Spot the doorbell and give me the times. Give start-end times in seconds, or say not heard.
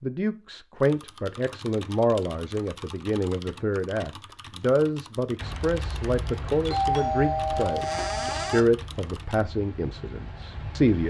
6.6-8.7.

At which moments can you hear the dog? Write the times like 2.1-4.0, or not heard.
not heard.